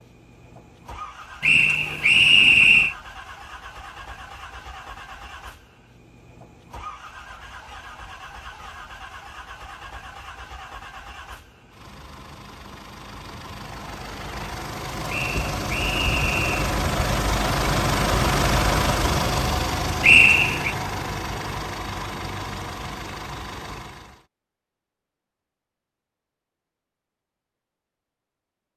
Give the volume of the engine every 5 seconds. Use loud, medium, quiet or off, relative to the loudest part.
quiet, quiet, quiet, loud, medium, off.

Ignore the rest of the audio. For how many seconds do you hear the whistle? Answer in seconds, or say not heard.
4 s.